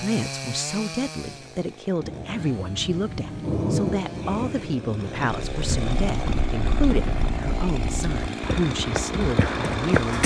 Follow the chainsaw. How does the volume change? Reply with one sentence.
The volume of the chainsaw goes down, then up.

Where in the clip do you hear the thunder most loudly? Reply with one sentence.
The volume of the thunder peaks at 4 seconds.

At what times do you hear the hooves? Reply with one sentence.
The hooves can be heard from 5.4 to 10.2 s.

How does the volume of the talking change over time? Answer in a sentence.
The volume of the talking stays about the same.